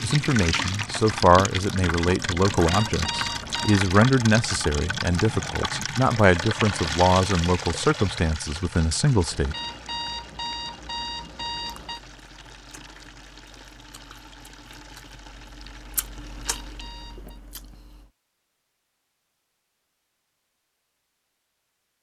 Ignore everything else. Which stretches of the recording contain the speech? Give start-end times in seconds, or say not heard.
0.0-9.6.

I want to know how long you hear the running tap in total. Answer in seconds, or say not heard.
17 s.